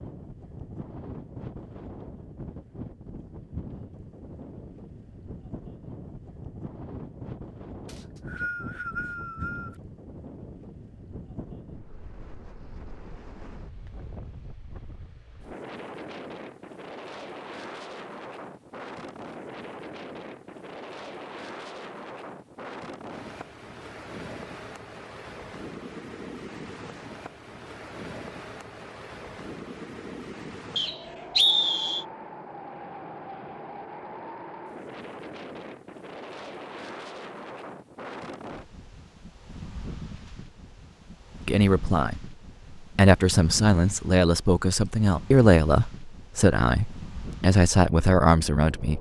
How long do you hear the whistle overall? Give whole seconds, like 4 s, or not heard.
3 s.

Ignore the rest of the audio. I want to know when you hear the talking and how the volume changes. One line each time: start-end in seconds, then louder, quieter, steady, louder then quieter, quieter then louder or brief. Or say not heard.
41.5-42.2 brief
43.0-48.9 steady.